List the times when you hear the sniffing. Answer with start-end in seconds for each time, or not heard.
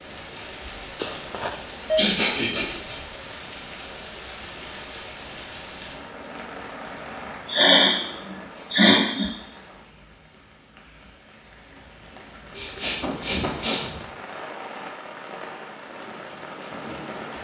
1.9-3.0, 7.5-8.0, 8.7-9.3, 12.6-14.0.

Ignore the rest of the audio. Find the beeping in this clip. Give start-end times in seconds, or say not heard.
0.9-2.0.